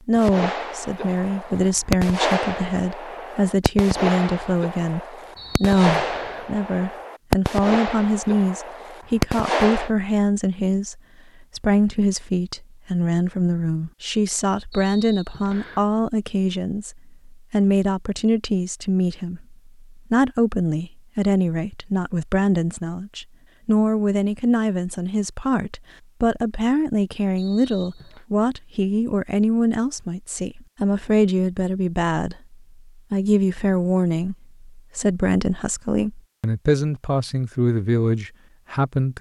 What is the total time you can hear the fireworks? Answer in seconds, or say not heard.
10 s.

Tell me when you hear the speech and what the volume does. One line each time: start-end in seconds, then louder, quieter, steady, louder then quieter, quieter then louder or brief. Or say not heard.
0.1-39.1 steady.